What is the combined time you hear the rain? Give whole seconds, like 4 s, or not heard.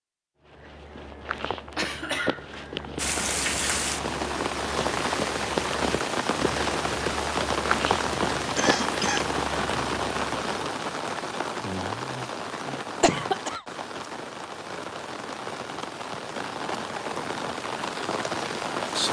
16 s.